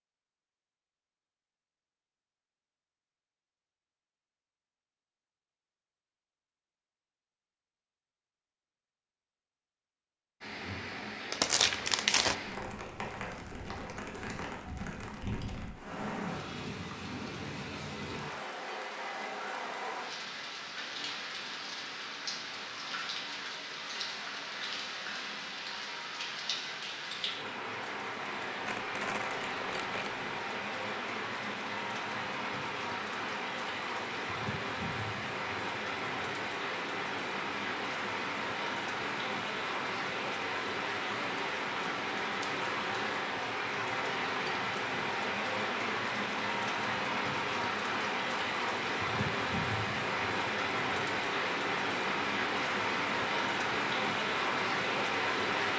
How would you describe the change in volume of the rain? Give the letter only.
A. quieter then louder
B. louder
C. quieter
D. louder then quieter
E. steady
B.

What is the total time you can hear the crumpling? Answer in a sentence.
You can hear the crumpling for 3 seconds altogether.